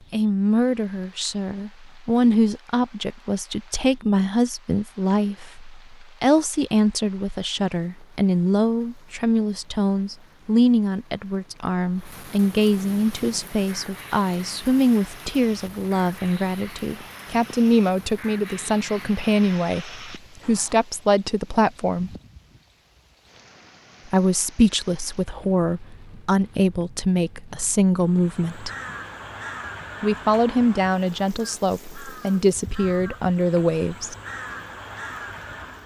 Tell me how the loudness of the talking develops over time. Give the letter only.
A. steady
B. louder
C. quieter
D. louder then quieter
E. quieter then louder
A.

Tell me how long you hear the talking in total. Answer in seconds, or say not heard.
31 s.